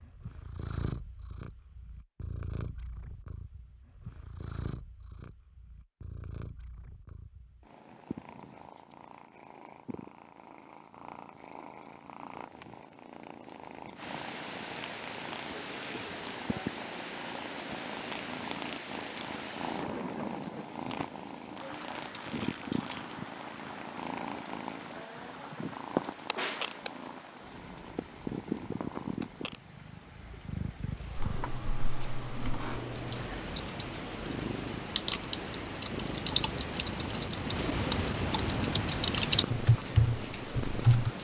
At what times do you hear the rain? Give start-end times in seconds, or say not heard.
13.9-41.2.